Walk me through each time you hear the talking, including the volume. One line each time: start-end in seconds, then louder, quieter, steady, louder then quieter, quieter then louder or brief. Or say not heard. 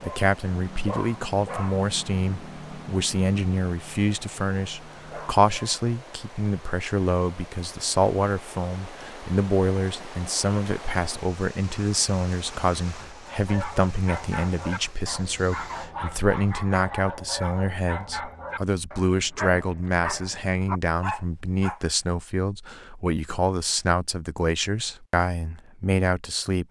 0.0-26.6 steady.